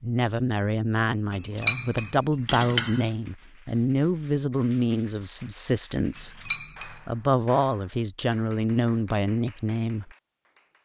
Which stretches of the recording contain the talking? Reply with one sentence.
You can hear the talking from 0.0 to 10.1 s.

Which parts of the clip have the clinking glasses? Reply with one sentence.
The clinking glasses can be heard from 1.3 to 3.0 s and from 6.2 to 7.0 s.